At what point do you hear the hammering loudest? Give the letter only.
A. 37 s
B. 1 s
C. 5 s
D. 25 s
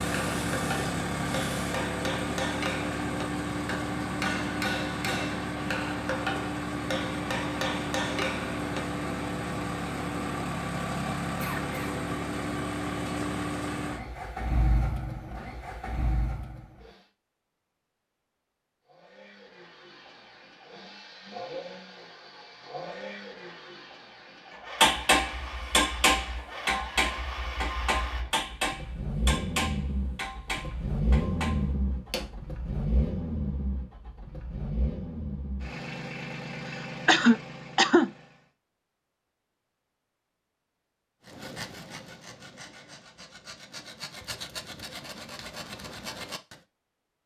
D.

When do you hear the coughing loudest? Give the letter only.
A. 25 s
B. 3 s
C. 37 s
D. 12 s
C.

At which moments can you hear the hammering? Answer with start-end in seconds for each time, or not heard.
0.0-9.0, 24.8-32.3.